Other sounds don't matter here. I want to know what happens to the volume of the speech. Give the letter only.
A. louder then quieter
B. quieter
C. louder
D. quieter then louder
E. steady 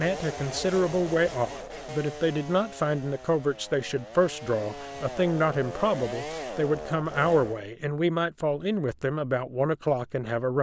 E.